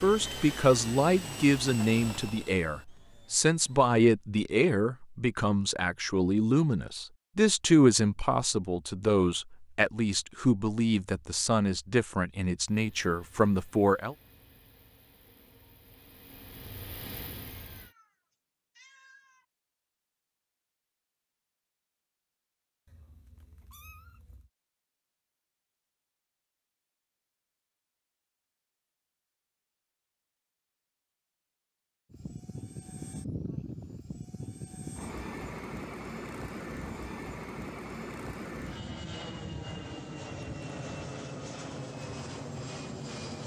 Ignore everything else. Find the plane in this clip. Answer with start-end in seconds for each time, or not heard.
0.0-4.0, 12.7-17.9, 32.1-43.4.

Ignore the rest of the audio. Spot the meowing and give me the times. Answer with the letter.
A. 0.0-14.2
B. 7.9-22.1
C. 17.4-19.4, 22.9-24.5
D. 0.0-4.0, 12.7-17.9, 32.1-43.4
C.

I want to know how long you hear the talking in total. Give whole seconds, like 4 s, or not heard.
14 s.